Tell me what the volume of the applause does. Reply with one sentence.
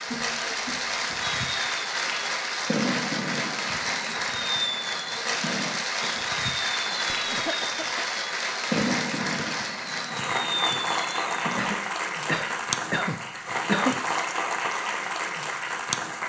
The volume of the applause stays about the same.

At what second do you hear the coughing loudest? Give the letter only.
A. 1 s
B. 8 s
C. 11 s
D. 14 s
D.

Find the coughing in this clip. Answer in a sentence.
You can hear the coughing from 0.1 to 1.4 s, from 7.1 to 8.2 s and from 11.6 to 14.0 s.